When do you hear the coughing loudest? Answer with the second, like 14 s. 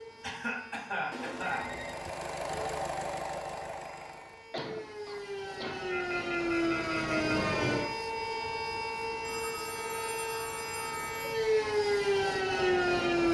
1 s.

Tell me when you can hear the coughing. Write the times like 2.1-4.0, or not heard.
0.2-1.7, 4.5-5.8, 10.8-11.6.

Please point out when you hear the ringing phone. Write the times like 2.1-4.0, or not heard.
1.1-2.9, 5.9-7.4, 9.2-11.4.